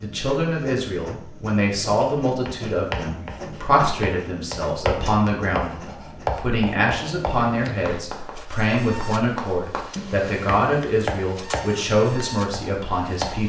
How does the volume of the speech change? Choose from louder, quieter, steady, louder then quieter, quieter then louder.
steady.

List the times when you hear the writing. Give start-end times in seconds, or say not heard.
1.9-13.4.